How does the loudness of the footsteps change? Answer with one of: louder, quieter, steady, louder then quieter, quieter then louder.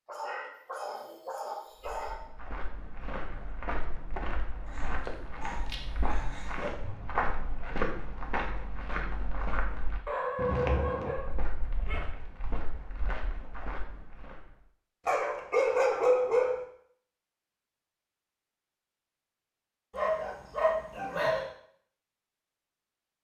louder then quieter.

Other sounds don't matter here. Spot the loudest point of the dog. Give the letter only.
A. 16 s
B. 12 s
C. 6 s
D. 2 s
A.